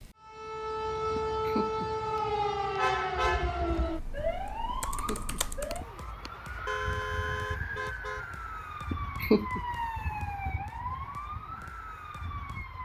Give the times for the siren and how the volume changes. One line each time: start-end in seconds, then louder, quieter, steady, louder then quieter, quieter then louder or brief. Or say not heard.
0.0-12.8 quieter.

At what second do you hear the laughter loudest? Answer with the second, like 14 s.
9 s.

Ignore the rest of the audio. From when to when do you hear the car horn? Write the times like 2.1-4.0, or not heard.
2.8-3.7, 6.7-8.2.